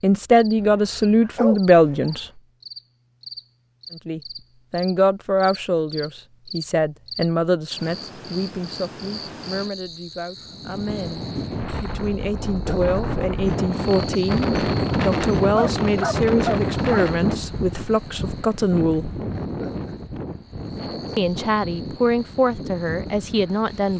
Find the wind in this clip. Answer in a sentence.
The wind can be heard from 10.3 to 23.9 s.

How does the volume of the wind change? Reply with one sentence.
The volume of the wind goes up, then down.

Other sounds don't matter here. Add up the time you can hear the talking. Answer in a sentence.
The talking can be heard for 20 seconds in total.